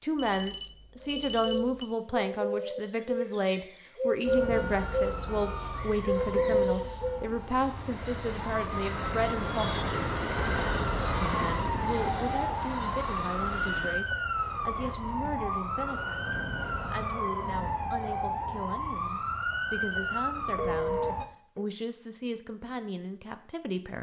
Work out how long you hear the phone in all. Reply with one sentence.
You can hear the phone for 4 seconds altogether.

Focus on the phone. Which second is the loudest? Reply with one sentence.
The loudest moment of the phone is at 21 seconds.